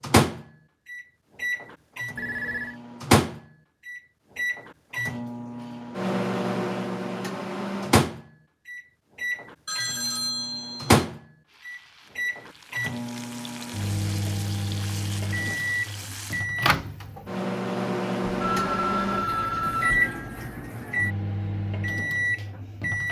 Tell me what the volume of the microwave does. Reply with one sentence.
The loudness of the microwave stays about the same.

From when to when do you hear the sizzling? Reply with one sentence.
The sizzling can be heard from 11.4 to 16.5 s.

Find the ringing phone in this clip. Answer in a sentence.
The ringing phone can be heard from 2.1 to 2.8 s, from 9.7 to 11.0 s and from 18.3 to 20.6 s.